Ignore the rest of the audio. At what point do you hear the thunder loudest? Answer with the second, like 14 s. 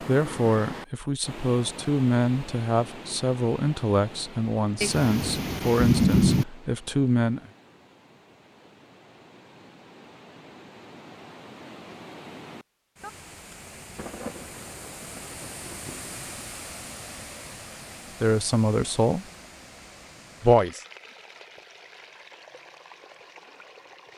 6 s.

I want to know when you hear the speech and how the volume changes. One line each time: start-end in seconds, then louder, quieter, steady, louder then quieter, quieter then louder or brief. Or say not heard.
0.0-7.4 steady
18.2-19.2 brief
20.4-20.8 brief.